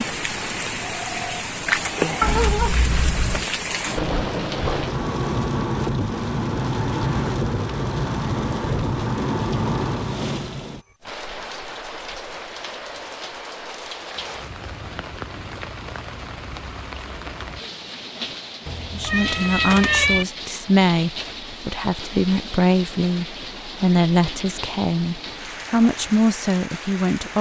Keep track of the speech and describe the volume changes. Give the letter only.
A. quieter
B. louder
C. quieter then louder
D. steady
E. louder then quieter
D.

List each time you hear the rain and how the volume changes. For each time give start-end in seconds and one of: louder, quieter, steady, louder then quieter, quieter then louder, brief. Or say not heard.
0.0-27.3 quieter.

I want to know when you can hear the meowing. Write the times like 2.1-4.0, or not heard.
2.2-3.5, 18.6-20.2.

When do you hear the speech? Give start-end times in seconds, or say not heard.
18.9-27.3.